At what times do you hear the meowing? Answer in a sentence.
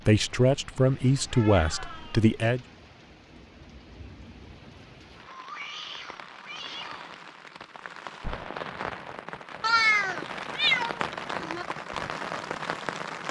The meowing can be heard from 1.1 to 2.3 s, from 5.2 to 7.0 s and from 9.6 to 11.7 s.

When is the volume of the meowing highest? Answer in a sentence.
The loudest moment of the meowing is at 10 seconds.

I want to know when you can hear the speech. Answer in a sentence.
The speech can be heard from 0.1 to 2.6 s.